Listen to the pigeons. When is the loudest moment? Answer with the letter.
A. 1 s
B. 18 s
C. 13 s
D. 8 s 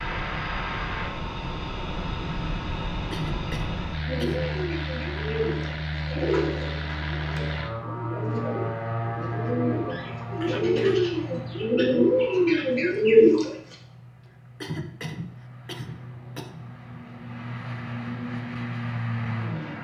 C.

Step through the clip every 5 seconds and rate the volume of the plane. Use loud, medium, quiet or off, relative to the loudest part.
loud, loud, medium, loud.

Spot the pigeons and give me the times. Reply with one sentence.
The pigeons can be heard from 4.0 to 13.5 s.